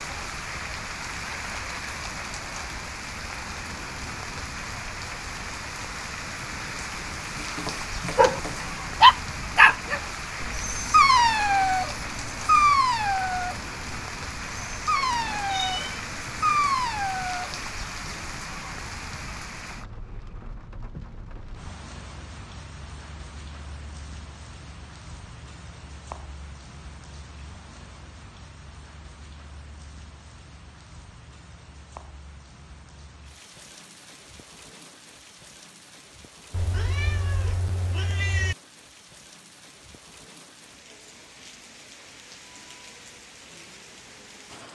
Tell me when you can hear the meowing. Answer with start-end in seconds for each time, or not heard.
7.2-8.8, 15.0-16.1, 36.5-38.5.